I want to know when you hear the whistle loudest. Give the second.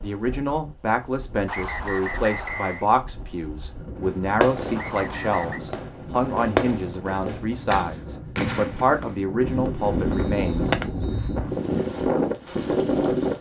2 s.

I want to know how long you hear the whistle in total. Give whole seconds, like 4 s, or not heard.
5 s.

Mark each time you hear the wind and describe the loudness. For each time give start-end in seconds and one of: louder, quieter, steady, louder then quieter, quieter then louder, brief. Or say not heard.
0.0-13.3 louder.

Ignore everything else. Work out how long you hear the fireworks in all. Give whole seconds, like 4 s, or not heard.
7 s.